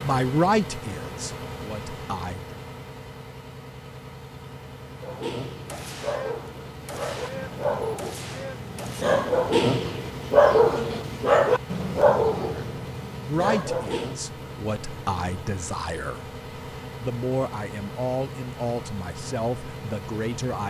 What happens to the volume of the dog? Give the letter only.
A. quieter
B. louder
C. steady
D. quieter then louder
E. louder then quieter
E.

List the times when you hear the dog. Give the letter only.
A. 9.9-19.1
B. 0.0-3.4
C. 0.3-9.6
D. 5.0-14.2
D.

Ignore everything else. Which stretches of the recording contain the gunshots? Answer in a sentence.
The gunshots can be heard from 5.7 to 9.1 s.